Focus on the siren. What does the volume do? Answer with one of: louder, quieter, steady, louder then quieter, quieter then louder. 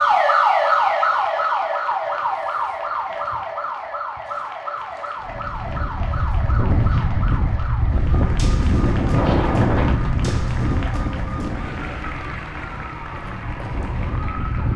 quieter.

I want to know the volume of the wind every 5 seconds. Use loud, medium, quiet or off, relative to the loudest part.
off, loud, medium.